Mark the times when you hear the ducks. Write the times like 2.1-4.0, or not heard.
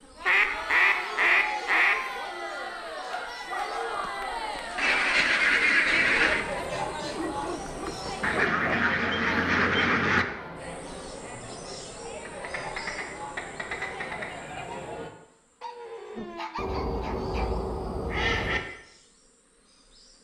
0.2-1.9, 4.8-6.5, 8.2-10.2, 12.2-14.2, 16.6-18.6.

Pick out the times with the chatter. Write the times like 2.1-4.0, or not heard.
0.0-15.1.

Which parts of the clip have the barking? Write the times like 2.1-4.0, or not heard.
3.0-4.2, 7.0-8.8, 15.6-17.6.